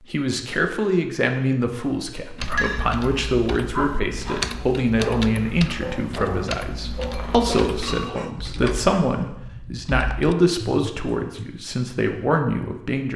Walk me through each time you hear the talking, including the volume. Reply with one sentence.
You can hear the talking from 0.1 to 13.1 s, at a steady volume.